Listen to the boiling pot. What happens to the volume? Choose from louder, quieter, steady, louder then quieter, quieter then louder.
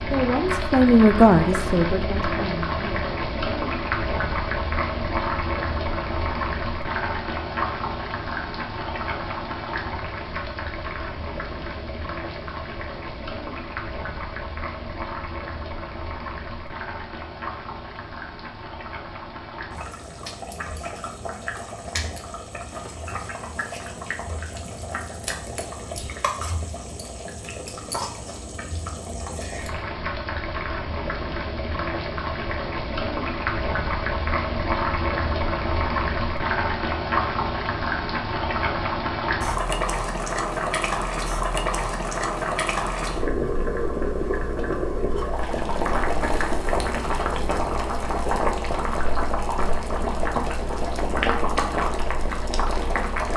quieter then louder.